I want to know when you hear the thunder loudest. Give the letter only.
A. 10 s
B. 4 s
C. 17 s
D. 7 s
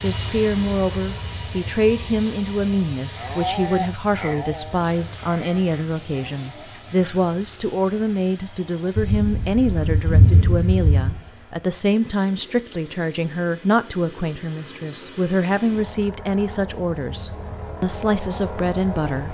A.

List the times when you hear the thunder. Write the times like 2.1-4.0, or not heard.
8.9-11.2.